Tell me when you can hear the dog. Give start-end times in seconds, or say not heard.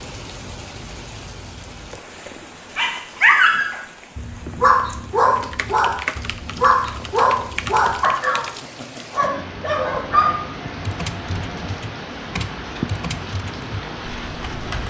2.8-10.3.